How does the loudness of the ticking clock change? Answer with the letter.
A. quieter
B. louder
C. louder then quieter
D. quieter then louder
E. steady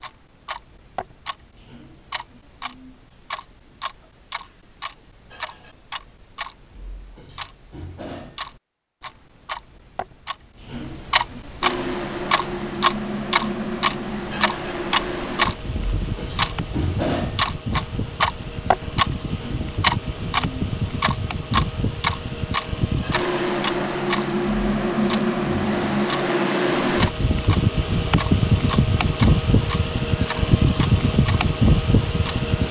C.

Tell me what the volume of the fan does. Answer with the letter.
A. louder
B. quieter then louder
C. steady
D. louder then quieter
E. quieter
A.